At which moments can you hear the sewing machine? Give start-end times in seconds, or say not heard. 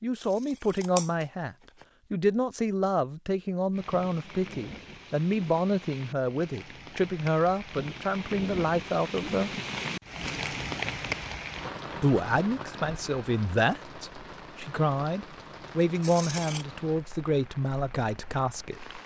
not heard.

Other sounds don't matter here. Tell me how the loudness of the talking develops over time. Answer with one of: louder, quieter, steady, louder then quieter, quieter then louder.
steady.